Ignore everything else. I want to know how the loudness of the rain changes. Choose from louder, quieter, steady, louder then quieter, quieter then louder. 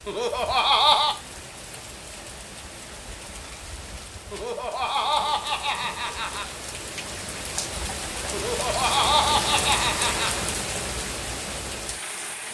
louder.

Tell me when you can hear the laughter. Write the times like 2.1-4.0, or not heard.
0.1-1.1, 4.3-6.5, 8.3-10.4.